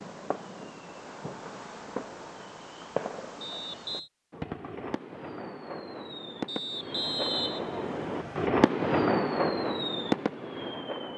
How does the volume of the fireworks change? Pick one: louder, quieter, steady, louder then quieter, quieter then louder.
louder.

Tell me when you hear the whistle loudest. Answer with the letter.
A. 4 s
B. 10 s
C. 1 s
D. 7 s
D.